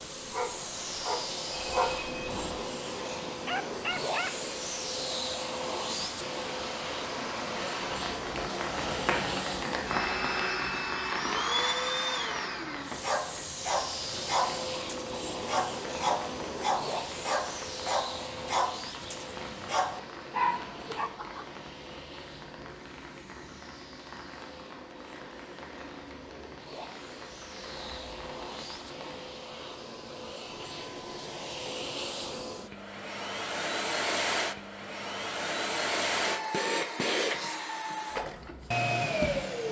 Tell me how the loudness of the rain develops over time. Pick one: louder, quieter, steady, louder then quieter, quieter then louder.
louder then quieter.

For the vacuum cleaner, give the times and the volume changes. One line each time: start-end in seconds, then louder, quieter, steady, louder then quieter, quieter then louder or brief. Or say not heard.
0.0-39.6 quieter then louder.